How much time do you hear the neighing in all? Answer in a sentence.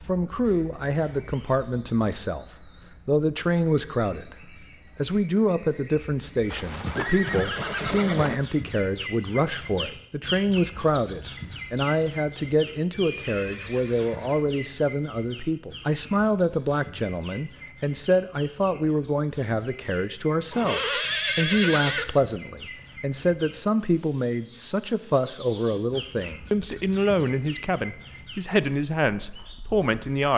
The neighing can be heard for 5 seconds in total.